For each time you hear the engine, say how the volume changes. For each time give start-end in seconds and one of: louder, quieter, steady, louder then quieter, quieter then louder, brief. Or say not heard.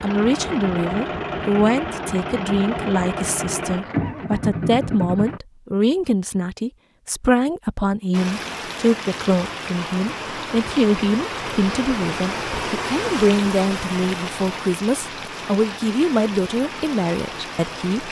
0.0-5.4 steady.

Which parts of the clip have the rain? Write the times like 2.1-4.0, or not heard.
8.1-18.0.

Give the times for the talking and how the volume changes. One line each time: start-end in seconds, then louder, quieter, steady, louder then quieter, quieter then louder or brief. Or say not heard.
0.0-18.0 steady.